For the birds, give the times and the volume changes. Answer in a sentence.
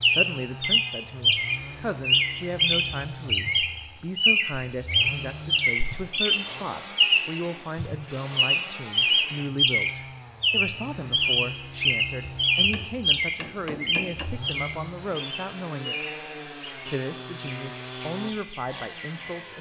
The birds can be heard from 0.0 to 19.4 s, getting quieter.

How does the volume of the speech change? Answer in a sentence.
The loudness of the speech stays about the same.